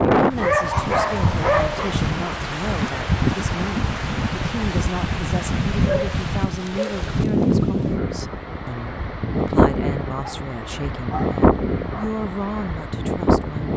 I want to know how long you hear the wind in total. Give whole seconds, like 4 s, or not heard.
14 s.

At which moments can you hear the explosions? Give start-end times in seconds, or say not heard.
not heard.